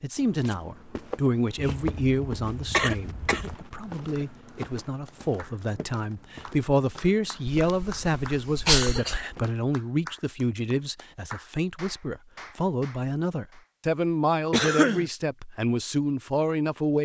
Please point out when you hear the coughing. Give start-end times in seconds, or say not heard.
1.6-3.5, 7.5-9.2, 14.5-15.1.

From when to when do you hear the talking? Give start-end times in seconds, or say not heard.
0.0-16.9.